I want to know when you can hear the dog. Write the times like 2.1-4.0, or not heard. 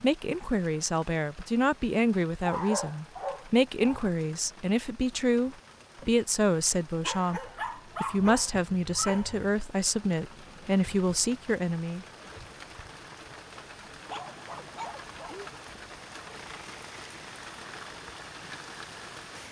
2.4-4.1, 7.0-9.6, 14.1-15.4.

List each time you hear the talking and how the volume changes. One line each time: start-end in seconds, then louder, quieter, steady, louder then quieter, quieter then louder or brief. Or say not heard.
0.0-12.1 steady.